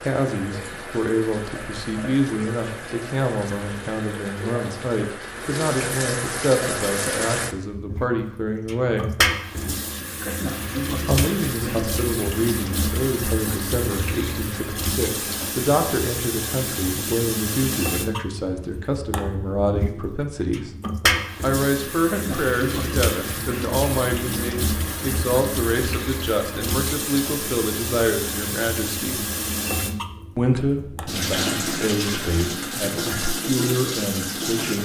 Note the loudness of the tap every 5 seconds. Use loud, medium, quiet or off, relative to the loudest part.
medium, loud, loud, loud, loud, loud, loud.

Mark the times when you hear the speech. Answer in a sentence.
You can hear the speech from 0.0 to 9.1 s, from 11.1 to 20.7 s, from 21.4 to 29.2 s and from 30.4 to 34.7 s.